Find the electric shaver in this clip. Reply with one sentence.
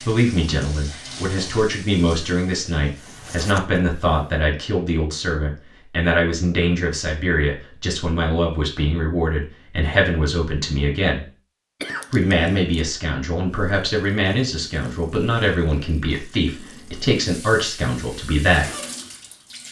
The electric shaver can't be heard in this clip.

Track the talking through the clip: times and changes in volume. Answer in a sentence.
The talking can be heard from 0.0 to 11.2 s, at a steady volume; and from 12.1 to 18.6 s, at a steady volume.